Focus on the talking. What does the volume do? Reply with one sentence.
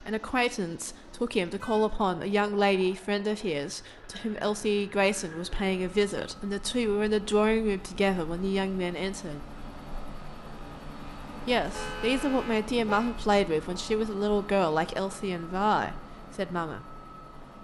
The volume of the talking stays about the same.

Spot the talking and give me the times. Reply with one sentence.
You can hear the talking from 0.0 to 9.4 s and from 11.4 to 16.9 s.